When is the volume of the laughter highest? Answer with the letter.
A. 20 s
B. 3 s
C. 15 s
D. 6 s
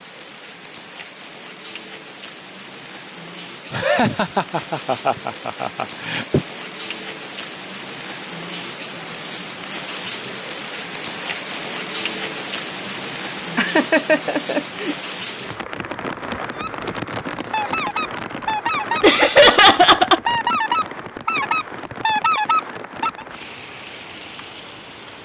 A.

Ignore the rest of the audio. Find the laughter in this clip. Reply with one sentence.
The laughter can be heard from 3.7 to 6.5 s, from 13.6 to 14.9 s and from 19.0 to 20.2 s.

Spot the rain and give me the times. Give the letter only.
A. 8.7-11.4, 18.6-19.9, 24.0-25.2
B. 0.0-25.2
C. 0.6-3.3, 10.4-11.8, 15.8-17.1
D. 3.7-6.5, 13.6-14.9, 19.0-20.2
B.